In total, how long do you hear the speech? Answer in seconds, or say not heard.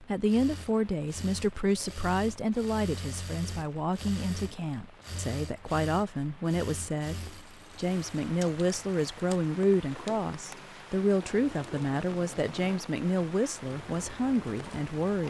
15 s.